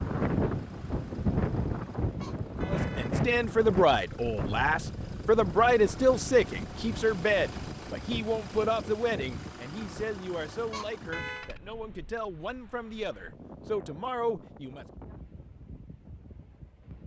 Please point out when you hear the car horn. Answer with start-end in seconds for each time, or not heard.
2.2-3.1, 10.7-11.5.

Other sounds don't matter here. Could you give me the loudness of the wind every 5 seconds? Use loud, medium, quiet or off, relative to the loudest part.
loud, medium, quiet, quiet.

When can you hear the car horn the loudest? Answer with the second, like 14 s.
11 s.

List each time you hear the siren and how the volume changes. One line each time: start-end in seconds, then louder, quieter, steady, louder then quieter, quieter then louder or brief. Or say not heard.
not heard.